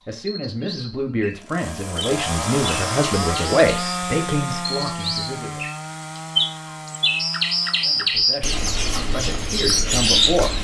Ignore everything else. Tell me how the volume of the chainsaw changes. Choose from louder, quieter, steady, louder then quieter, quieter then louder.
quieter.